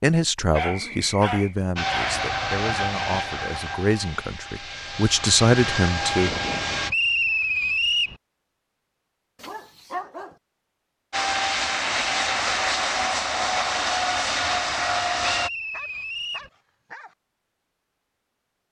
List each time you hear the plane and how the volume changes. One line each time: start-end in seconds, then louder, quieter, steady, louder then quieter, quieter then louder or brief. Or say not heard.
1.8-6.9 quieter then louder
11.1-15.5 steady.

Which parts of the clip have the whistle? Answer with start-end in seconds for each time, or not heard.
0.6-1.4, 6.8-8.2, 15.2-16.5.